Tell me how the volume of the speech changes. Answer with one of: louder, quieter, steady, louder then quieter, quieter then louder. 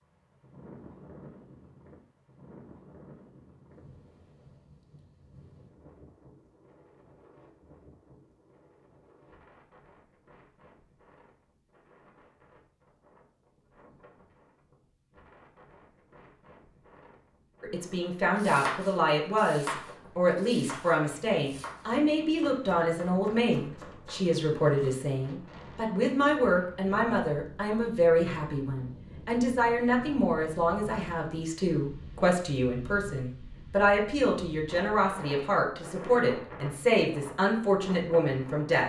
steady.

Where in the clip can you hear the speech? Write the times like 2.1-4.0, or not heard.
17.6-38.8.